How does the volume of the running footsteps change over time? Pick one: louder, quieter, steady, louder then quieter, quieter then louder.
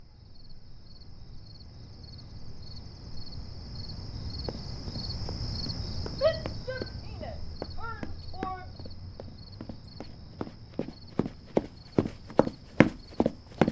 louder.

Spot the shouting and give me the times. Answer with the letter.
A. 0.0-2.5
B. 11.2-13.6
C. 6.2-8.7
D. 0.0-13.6
C.